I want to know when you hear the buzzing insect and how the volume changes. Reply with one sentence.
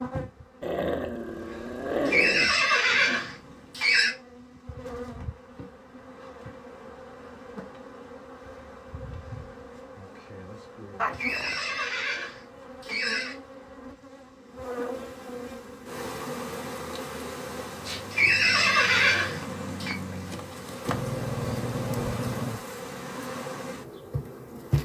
The buzzing insect can be heard from 0.0 to 24.8 s, getting louder.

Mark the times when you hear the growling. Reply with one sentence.
The growling can be heard from 0.6 to 2.5 s, from 10.9 to 11.6 s and from 20.9 to 22.6 s.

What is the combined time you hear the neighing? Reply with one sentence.
You can hear the neighing for 6 seconds altogether.